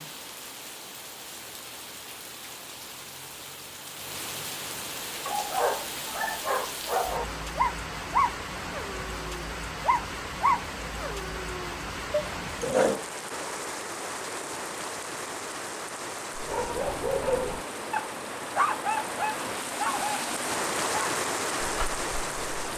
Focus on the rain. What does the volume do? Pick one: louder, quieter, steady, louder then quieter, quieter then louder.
louder.